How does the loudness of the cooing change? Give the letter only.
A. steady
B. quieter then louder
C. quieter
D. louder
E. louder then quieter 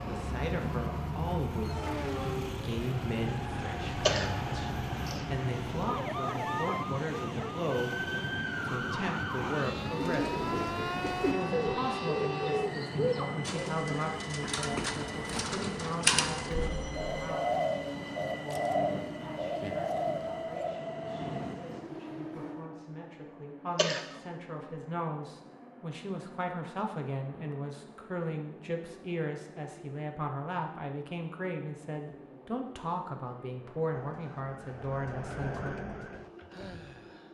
A.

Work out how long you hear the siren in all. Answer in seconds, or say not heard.
16 s.